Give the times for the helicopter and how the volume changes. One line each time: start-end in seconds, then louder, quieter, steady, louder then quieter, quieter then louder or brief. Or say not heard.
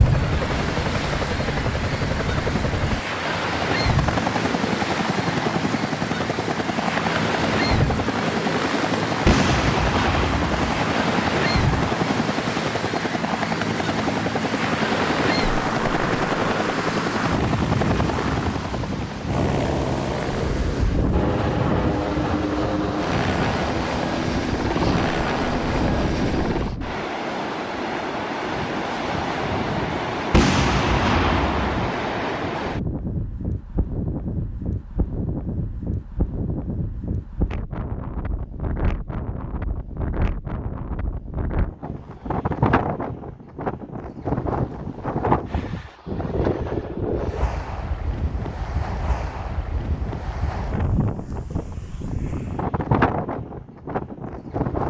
0.0-26.8 steady.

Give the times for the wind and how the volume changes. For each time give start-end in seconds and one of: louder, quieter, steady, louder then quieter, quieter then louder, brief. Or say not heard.
0.0-54.8 steady.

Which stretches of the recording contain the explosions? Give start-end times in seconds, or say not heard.
9.2-10.7, 30.3-31.8.